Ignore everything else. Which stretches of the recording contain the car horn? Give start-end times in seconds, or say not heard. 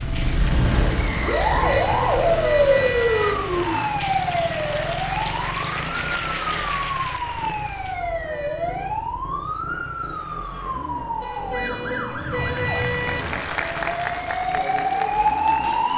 1.5-3.4, 8.0-8.9, 11.2-13.2.